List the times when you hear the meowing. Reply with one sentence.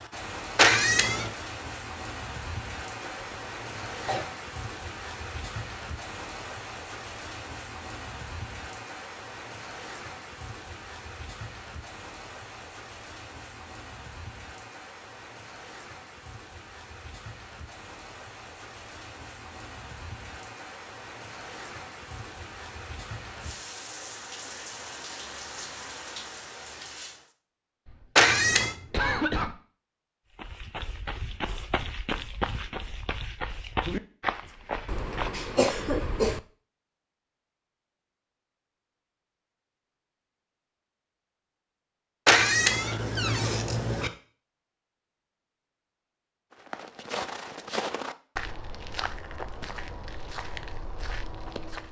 You can hear the meowing from 0.6 to 1.3 s, from 28.1 to 28.8 s and from 42.2 to 44.1 s.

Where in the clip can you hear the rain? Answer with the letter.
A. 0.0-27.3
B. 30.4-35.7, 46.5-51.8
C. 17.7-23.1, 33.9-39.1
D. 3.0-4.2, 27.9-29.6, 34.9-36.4
A.